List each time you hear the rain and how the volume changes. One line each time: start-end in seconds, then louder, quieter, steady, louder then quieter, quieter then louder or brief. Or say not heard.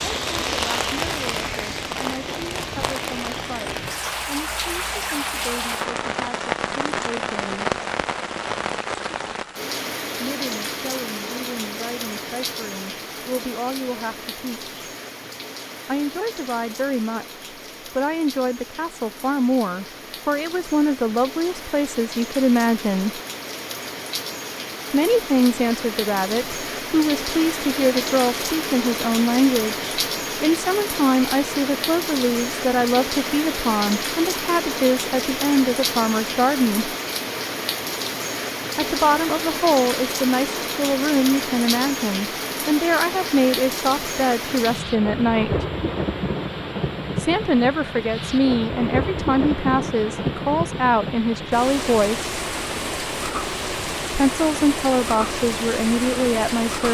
0.0-56.8 quieter then louder.